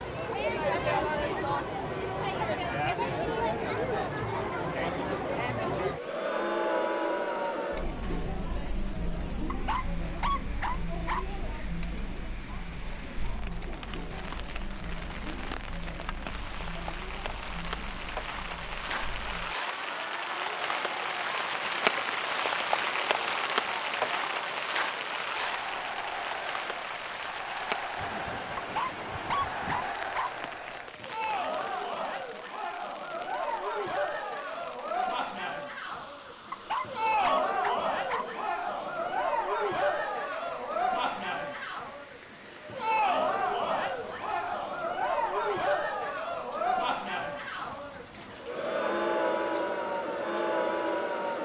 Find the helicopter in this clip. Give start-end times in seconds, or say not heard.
not heard.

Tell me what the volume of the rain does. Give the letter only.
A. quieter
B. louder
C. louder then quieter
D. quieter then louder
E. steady
C.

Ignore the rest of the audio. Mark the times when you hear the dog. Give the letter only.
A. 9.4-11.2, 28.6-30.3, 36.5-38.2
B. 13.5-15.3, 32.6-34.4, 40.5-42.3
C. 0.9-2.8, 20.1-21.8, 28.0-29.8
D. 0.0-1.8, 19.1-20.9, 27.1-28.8
A.